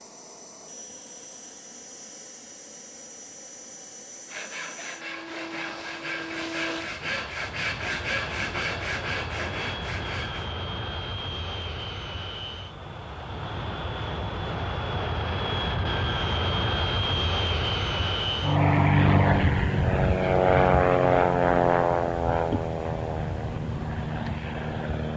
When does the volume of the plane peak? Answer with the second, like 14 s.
21 s.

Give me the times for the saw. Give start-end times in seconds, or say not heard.
4.2-10.4.